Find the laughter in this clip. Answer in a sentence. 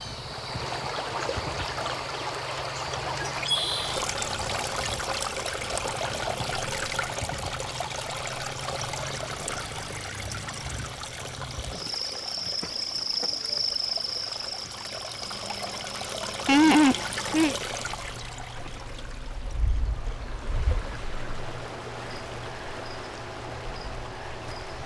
You can hear the laughter from 16.4 to 17.6 s.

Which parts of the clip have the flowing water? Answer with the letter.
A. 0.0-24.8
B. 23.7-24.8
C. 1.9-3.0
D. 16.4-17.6
A.